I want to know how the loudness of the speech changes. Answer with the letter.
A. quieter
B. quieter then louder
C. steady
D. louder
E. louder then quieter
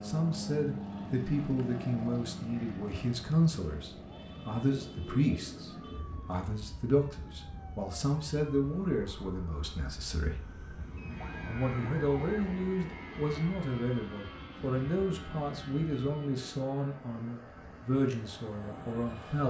C.